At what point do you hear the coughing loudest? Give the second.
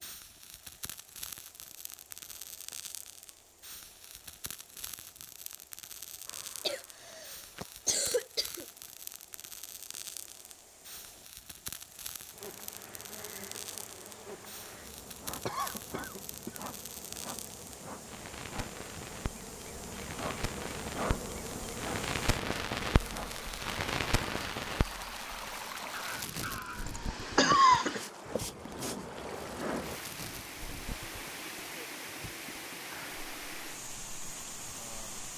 28 s.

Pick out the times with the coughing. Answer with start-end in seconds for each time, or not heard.
6.6-8.7, 15.4-16.6, 26.9-28.0.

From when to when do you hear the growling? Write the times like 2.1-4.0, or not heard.
25.9-26.9.